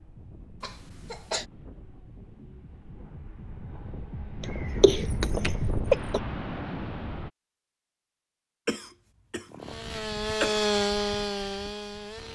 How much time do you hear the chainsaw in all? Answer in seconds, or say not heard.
3 s.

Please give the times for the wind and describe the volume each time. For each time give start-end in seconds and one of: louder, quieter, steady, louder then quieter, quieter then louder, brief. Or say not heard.
0.0-7.3 louder.